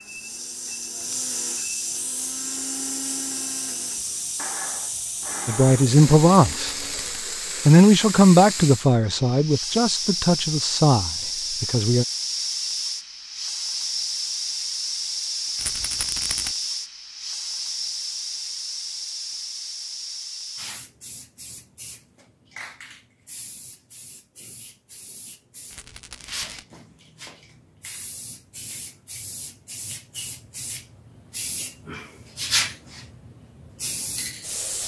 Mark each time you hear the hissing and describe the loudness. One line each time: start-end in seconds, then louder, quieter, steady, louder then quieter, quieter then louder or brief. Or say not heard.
0.0-34.8 quieter then louder.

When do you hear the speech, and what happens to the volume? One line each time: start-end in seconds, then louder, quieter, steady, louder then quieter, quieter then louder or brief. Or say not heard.
5.5-6.8 brief
7.7-12.1 quieter.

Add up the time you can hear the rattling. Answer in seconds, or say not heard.
3 s.